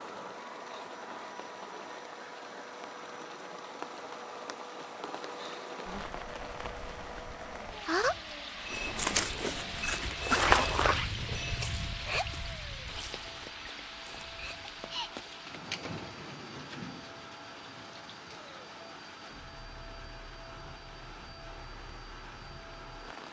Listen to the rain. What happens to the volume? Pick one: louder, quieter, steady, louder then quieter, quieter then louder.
louder then quieter.